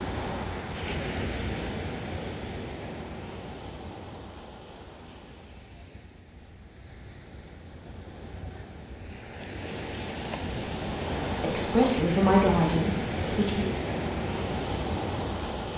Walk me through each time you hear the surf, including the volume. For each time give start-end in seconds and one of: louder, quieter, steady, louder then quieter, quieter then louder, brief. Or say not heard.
0.0-15.7 quieter then louder.